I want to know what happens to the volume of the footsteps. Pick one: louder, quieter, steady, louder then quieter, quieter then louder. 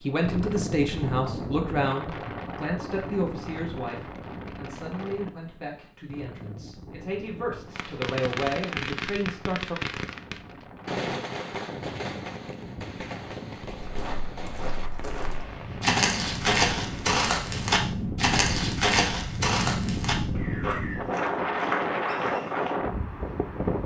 louder then quieter.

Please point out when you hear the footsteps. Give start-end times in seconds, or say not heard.
13.8-22.8.